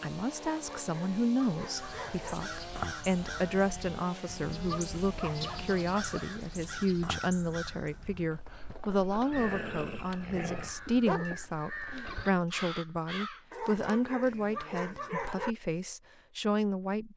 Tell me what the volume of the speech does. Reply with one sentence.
The volume of the speech stays about the same.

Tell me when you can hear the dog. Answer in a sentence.
The dog can be heard from 0.3 to 2.4 s, from 4.7 to 6.3 s, from 9.3 to 11.3 s and from 13.5 to 15.6 s.